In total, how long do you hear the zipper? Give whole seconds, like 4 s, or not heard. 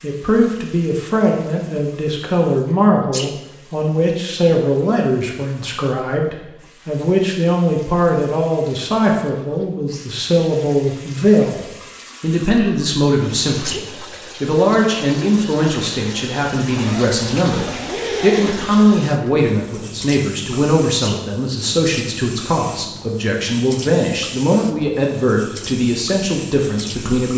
2 s.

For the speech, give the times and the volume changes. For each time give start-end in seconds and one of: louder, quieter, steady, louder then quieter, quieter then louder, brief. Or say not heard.
0.0-27.3 steady.